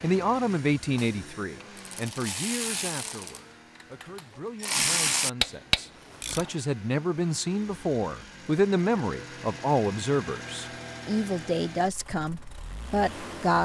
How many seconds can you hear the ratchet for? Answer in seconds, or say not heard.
6 s.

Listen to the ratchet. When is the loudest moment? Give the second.
6 s.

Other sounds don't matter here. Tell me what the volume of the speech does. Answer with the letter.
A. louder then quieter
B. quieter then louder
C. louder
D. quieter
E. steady
B.